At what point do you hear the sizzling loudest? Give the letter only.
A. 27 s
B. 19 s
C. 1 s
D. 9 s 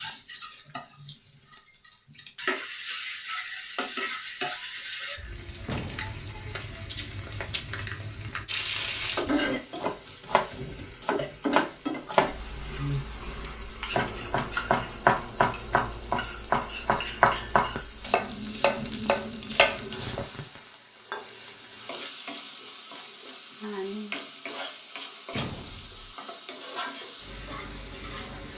D.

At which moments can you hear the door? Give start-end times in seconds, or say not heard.
5.7-6.2, 25.3-26.1.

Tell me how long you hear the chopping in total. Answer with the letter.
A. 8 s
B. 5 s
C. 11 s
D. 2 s
C.